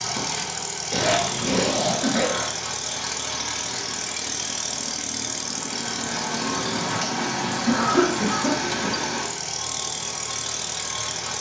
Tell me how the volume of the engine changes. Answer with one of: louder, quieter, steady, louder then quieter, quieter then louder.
steady.